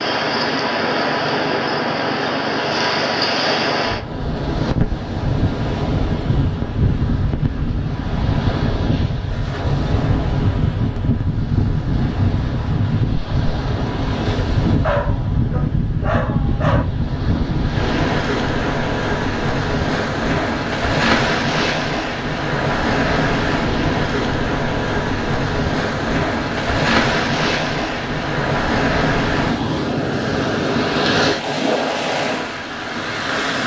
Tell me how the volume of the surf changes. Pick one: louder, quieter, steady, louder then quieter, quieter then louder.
steady.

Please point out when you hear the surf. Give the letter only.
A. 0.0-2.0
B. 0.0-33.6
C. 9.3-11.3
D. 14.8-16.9
B.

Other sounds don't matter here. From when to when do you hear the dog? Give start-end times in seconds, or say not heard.
14.8-16.9.